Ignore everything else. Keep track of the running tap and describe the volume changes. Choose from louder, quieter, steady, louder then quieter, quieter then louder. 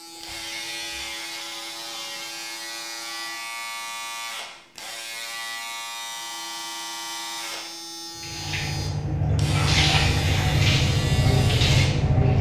louder.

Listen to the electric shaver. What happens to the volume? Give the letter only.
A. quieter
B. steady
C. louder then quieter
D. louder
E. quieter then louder
B.